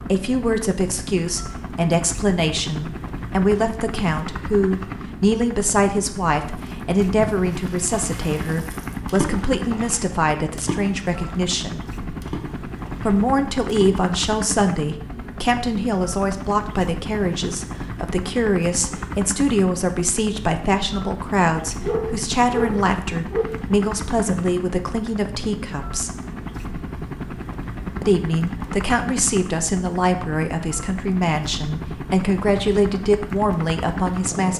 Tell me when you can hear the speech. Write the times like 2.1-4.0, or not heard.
0.0-11.8, 13.1-26.2, 28.0-34.5.